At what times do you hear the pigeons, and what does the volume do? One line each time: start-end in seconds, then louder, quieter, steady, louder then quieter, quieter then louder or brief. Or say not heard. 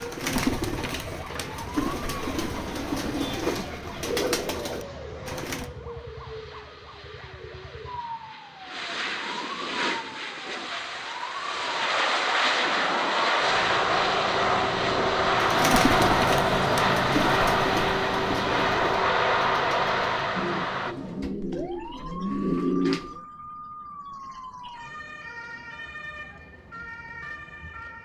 0.0-5.7 steady
15.4-23.2 quieter then louder.